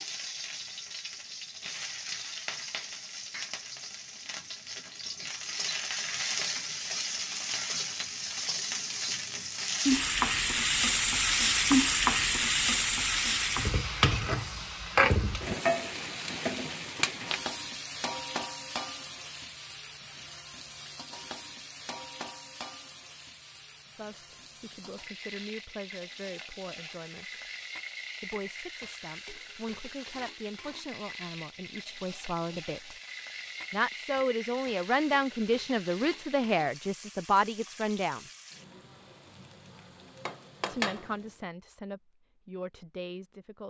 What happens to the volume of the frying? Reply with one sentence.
The volume of the frying goes up, then down.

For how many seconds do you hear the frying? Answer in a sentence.
You can hear the frying for 41 seconds altogether.